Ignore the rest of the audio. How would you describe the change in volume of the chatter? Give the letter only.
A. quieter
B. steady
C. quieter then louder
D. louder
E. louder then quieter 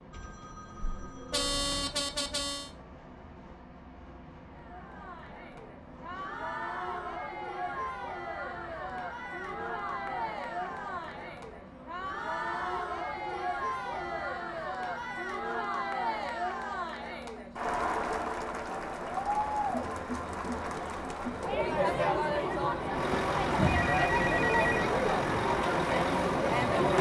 D.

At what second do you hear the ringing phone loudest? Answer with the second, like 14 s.
24 s.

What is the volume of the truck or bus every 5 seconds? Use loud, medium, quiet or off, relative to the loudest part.
quiet, quiet, quiet, quiet, loud, loud.